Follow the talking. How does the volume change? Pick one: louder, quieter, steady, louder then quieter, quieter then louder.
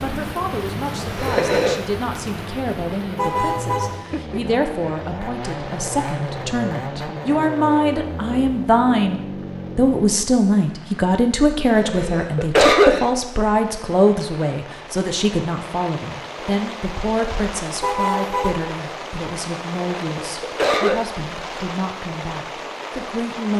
louder then quieter.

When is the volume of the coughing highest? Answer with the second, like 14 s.
13 s.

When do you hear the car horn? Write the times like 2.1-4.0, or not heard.
3.1-4.0, 17.8-18.5.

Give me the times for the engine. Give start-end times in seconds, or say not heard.
0.0-10.1.